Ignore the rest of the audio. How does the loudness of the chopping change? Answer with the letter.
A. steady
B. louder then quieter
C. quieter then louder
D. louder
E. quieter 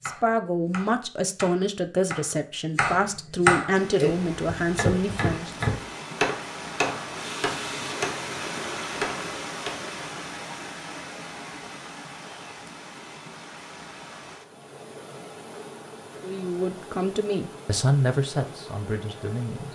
B.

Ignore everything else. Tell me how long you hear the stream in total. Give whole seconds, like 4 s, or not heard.
16 s.